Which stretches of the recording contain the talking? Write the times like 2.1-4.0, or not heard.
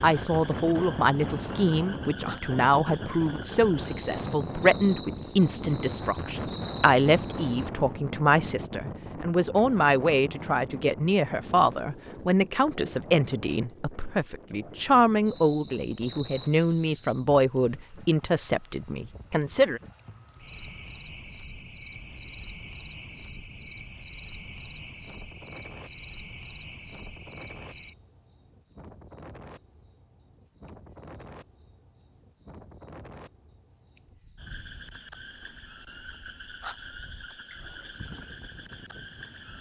0.0-19.8.